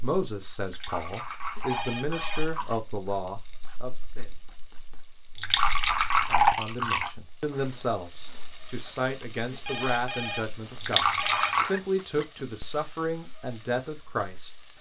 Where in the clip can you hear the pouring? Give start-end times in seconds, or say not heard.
0.7-2.8, 5.3-7.1, 10.8-11.7.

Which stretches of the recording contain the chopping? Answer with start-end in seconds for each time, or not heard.
not heard.